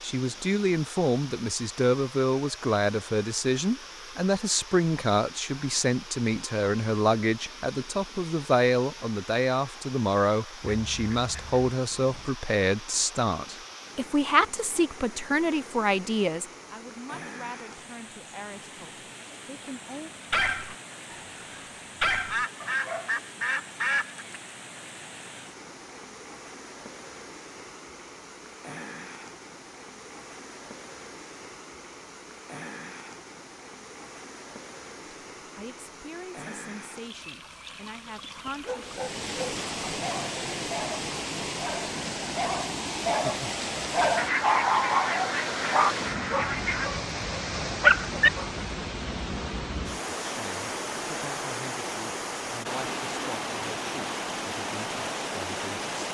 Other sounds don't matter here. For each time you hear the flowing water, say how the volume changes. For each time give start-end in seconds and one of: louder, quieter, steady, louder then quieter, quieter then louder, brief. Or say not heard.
0.0-56.0 louder.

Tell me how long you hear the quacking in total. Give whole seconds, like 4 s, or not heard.
7 s.